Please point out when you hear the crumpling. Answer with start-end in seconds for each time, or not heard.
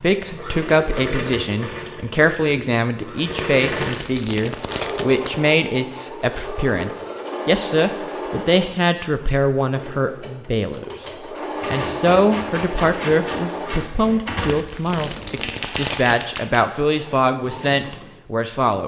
3.2-5.3, 14.4-16.4.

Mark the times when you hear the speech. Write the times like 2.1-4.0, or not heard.
0.0-10.9, 11.7-18.8.